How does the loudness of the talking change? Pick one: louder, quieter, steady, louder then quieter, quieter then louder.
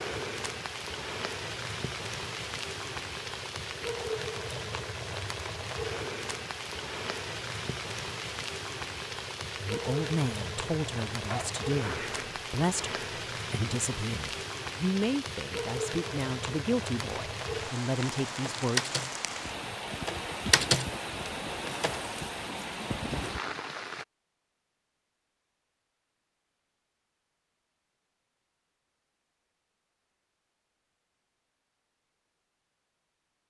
steady.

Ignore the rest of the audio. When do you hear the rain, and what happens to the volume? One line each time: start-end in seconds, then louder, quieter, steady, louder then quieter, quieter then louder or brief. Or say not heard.
0.0-24.1 steady.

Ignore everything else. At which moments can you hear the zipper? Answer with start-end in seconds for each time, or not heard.
11.3-12.4.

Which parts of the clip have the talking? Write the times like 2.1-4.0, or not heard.
9.6-18.9.